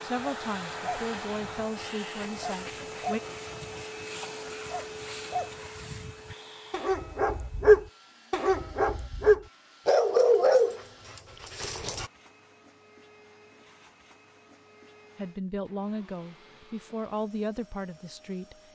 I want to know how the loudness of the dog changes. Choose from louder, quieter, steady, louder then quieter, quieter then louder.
louder.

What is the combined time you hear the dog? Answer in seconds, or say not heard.
12 s.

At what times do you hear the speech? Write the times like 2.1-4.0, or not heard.
0.0-3.2, 15.2-18.6.